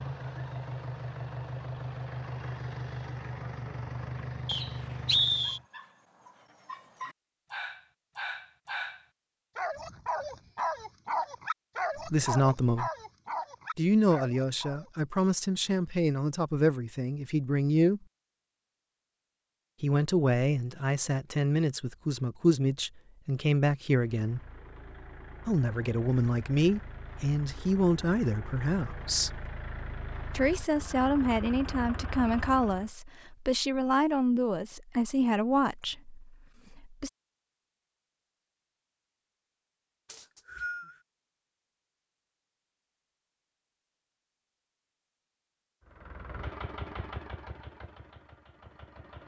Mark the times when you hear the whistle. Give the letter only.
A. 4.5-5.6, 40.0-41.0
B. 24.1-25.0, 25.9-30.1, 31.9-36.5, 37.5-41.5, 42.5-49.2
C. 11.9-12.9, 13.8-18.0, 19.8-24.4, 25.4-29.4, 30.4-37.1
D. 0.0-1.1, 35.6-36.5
A.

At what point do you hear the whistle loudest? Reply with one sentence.
The loudest moment of the whistle is at 5 seconds.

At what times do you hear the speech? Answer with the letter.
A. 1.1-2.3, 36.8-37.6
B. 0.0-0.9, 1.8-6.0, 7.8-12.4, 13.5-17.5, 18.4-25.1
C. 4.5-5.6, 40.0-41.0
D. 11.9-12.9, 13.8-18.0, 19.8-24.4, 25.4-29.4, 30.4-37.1
D.